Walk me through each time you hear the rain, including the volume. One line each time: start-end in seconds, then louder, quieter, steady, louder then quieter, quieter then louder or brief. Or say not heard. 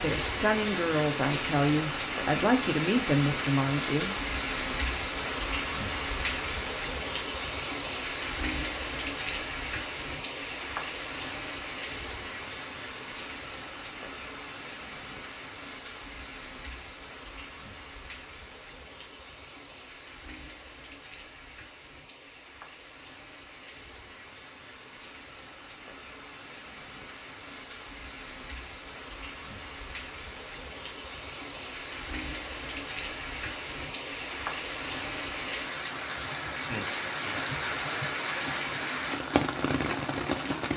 0.0-40.7 quieter then louder.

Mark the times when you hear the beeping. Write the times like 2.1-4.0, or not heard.
not heard.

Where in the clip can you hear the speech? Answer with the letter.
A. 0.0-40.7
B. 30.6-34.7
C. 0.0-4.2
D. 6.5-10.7
C.